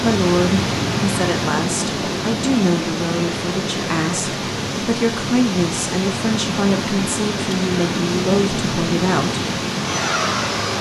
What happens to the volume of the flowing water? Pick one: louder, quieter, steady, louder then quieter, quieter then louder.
steady.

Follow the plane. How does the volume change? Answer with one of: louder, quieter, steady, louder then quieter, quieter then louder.
quieter then louder.